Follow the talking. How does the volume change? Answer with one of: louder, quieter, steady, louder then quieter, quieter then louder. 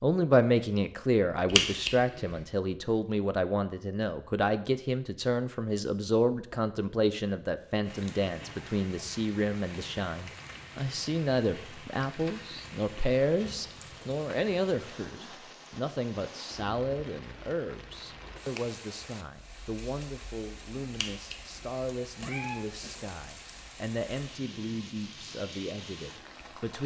quieter.